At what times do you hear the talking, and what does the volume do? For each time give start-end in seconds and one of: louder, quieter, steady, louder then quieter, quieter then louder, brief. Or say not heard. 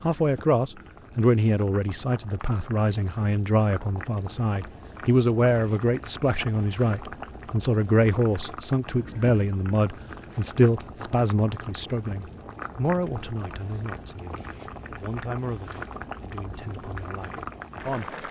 0.0-18.1 quieter.